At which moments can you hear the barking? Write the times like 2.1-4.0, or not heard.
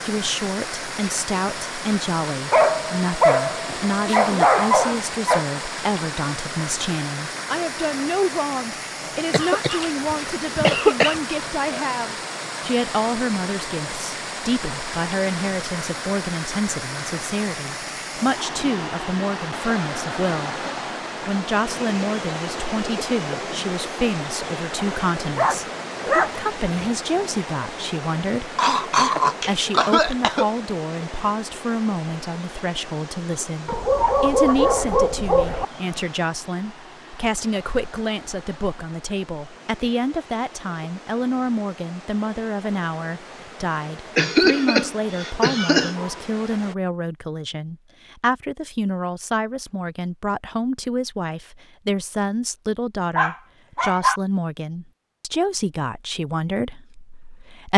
2.5-5.5, 25.4-26.9, 33.6-35.6, 53.1-54.2.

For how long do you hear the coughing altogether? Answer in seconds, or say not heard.
6 s.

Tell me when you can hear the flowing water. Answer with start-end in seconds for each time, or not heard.
0.0-46.8.